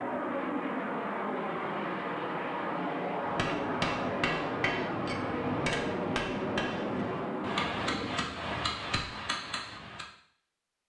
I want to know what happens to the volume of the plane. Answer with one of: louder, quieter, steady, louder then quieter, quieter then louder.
steady.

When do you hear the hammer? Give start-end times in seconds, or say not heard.
3.2-10.1.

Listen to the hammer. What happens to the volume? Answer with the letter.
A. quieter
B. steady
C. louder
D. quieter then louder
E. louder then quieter
B.